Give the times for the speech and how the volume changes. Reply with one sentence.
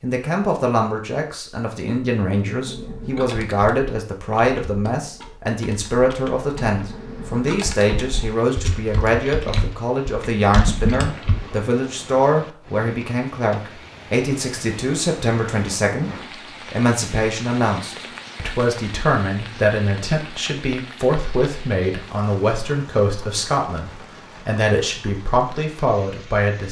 You can hear the speech from 0.0 to 26.6 s, at a steady volume.